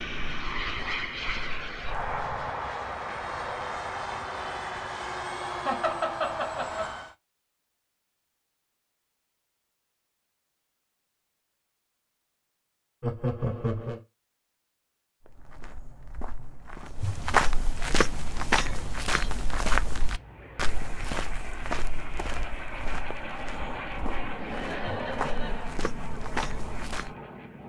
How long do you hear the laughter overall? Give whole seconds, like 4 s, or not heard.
4 s.